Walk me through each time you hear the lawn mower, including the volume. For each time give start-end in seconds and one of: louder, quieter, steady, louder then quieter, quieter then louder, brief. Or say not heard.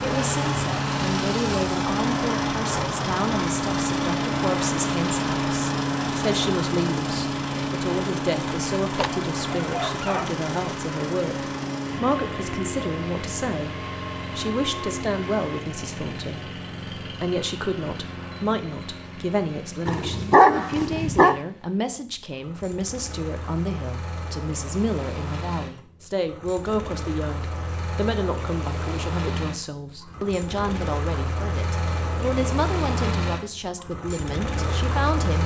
0.0-35.4 quieter then louder.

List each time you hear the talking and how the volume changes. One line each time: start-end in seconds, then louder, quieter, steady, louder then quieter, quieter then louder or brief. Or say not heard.
0.0-13.8 steady
14.3-35.4 steady.